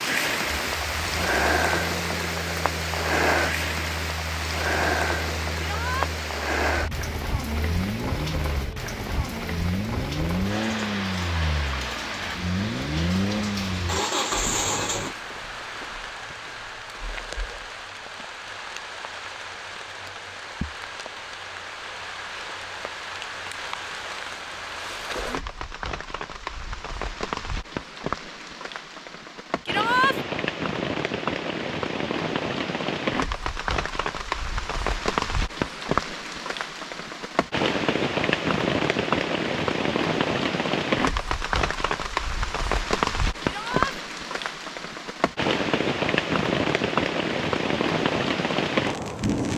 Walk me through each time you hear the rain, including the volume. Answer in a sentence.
You can hear the rain from 0.0 to 49.5 s, getting quieter then louder.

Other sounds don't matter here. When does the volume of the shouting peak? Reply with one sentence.
The volume of the shouting peaks at 30 seconds.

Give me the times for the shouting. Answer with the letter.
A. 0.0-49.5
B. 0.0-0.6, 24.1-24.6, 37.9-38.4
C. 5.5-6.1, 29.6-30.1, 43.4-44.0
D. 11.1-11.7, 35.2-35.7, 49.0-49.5
C.